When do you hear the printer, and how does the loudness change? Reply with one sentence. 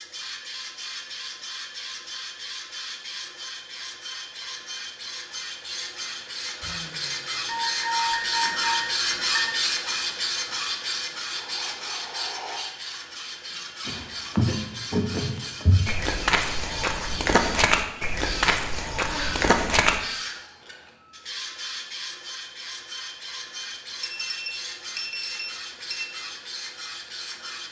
The printer can be heard from 0.0 to 27.6 s, getting louder then quieter.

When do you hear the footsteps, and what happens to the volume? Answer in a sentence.
The footsteps can be heard from 13.8 to 20.0 s, at a steady volume.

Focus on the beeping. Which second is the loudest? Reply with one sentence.
The loudest moment of the beeping is at 8 seconds.